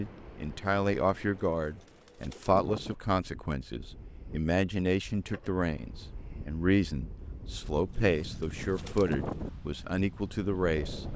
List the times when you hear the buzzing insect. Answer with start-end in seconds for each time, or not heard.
not heard.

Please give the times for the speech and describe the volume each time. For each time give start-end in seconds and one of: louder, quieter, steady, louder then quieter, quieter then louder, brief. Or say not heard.
0.0-11.1 steady.